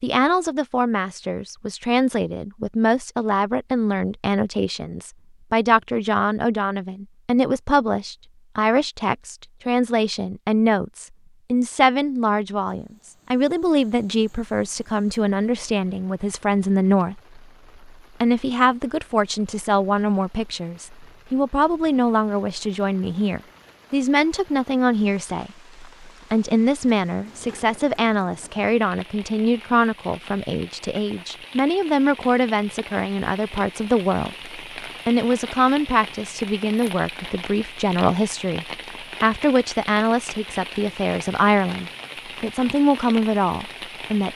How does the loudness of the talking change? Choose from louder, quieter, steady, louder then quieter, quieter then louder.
steady.